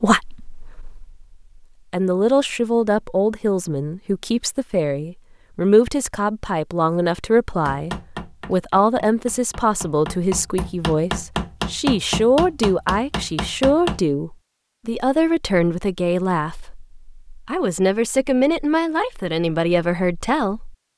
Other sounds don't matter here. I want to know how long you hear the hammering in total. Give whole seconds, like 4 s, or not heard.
6 s.